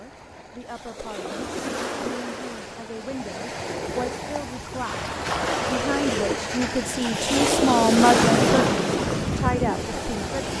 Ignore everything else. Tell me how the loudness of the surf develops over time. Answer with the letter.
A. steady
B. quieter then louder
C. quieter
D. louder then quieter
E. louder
E.